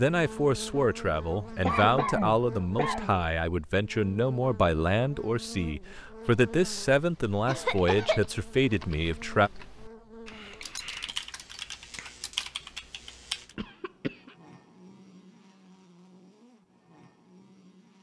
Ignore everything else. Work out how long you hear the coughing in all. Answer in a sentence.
The coughing can be heard for 3 seconds in total.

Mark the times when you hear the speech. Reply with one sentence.
You can hear the speech from 0.0 to 9.5 s.